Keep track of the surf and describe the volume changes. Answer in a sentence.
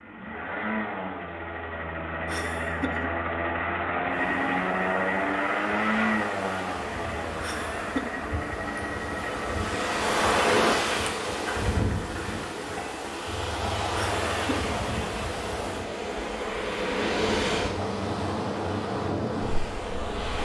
The volume of the surf goes up.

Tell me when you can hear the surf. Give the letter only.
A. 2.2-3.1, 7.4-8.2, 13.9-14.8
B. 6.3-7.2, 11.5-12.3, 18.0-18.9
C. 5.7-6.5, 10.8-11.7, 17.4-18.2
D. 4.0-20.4
D.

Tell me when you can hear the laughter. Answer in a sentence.
The laughter can be heard from 2.2 to 3.1 s, from 7.4 to 8.2 s and from 13.9 to 14.8 s.